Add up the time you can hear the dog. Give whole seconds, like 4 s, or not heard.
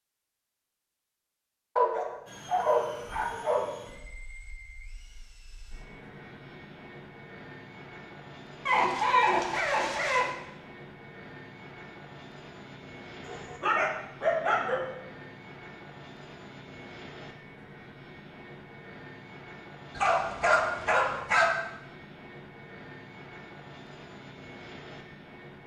7 s.